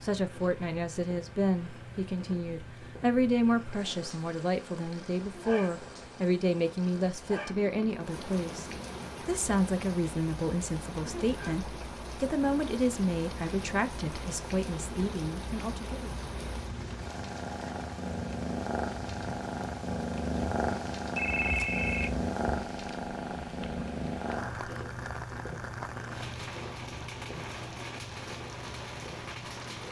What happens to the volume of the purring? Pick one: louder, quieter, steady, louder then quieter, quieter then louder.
louder then quieter.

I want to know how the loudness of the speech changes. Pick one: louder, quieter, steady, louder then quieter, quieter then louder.
steady.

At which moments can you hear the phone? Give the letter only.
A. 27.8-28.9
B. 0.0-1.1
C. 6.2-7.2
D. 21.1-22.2
D.